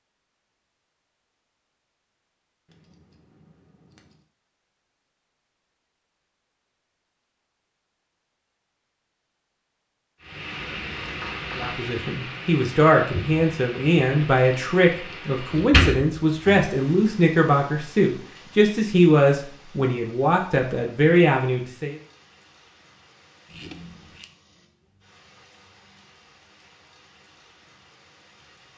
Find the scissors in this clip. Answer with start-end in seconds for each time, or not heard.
2.6-4.2, 10.6-11.8, 23.5-24.2.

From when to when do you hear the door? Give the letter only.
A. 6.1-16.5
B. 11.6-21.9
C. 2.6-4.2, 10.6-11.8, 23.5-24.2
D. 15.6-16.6
D.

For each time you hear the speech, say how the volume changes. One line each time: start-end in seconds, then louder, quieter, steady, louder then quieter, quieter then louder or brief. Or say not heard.
11.6-21.9 steady.